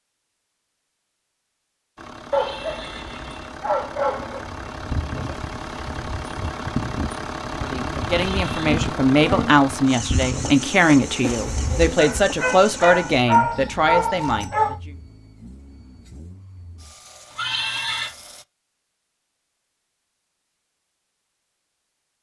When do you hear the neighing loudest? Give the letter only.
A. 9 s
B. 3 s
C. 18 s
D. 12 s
C.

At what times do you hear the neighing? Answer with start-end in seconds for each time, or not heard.
2.3-3.5, 8.1-8.8, 17.3-18.1.